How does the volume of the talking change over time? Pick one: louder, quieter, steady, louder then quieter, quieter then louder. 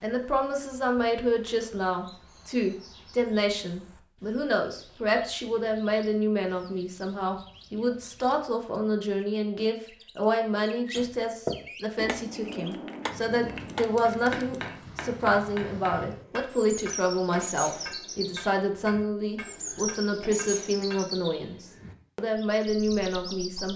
steady.